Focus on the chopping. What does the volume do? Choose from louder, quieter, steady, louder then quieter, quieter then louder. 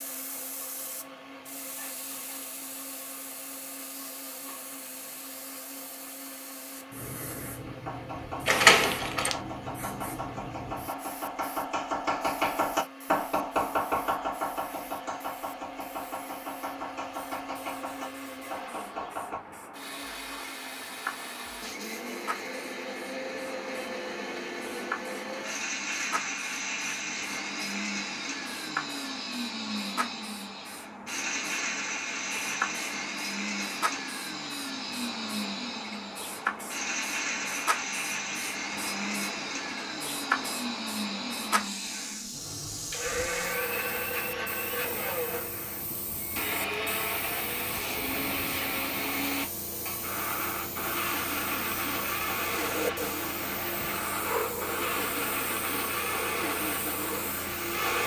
louder then quieter.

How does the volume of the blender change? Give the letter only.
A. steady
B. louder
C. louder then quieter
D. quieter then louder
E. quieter
B.